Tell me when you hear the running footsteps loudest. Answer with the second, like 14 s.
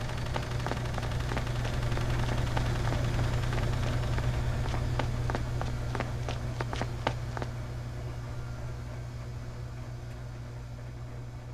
7 s.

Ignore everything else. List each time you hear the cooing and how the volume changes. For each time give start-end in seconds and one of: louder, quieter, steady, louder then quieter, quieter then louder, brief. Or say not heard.
not heard.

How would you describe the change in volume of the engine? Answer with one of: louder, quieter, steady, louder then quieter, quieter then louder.
quieter.